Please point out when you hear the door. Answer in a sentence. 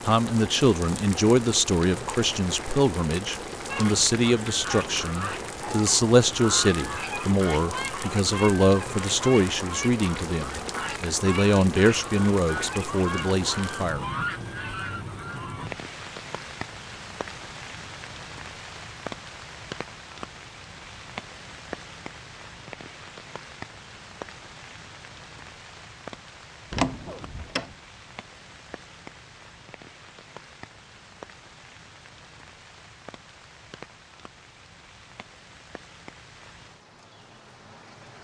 The door can be heard from 26.7 to 27.8 s.